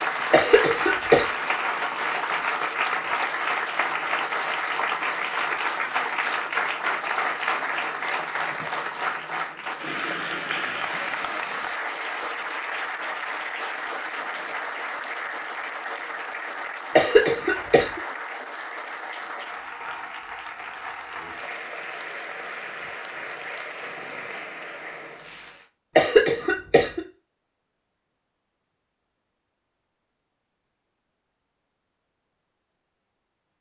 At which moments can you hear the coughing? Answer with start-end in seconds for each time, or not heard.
0.3-1.2, 16.9-18.0, 25.9-27.0.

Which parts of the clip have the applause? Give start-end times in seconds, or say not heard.
0.0-25.7.